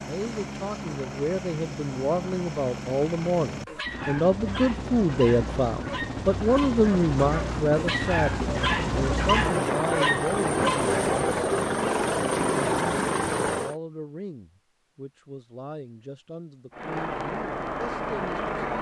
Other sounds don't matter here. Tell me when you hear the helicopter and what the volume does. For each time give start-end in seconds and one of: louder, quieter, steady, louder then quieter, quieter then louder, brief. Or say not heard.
0.0-13.8 louder
16.7-18.7 brief.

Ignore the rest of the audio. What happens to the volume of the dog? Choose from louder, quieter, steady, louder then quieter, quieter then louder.
louder.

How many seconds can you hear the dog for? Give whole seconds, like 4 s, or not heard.
7 s.